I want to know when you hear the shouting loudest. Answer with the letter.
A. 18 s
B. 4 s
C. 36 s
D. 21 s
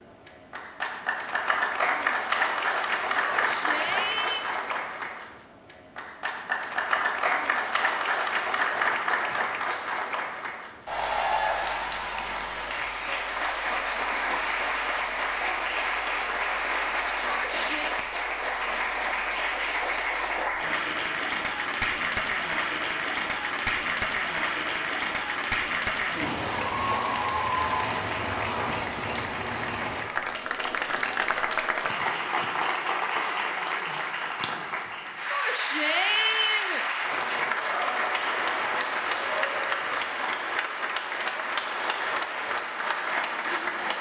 C.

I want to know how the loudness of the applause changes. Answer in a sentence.
The volume of the applause stays about the same.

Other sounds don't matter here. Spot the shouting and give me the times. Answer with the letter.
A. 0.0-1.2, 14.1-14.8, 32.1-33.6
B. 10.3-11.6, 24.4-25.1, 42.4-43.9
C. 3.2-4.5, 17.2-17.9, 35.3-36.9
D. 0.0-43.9
C.